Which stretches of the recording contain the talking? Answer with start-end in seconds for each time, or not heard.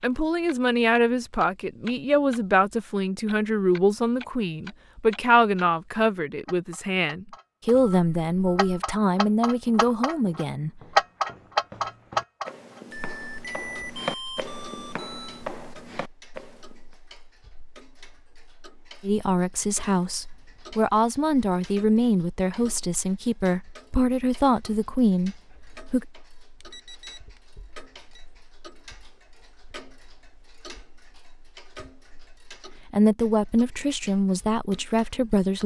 0.0-10.8, 19.0-26.1, 32.9-35.6.